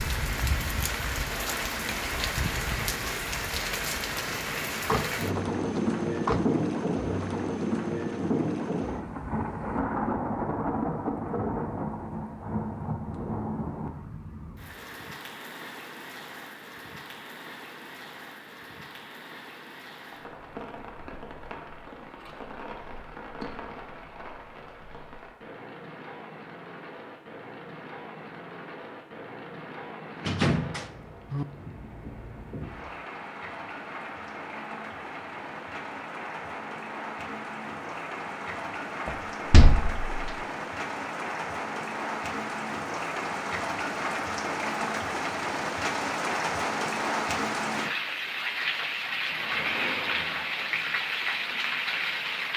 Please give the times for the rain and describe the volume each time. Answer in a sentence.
You can hear the rain from 0.0 to 52.5 s, getting quieter then louder.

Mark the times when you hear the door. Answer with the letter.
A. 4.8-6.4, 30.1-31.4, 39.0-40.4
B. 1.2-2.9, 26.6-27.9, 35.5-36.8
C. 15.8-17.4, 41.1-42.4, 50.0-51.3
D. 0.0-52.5
A.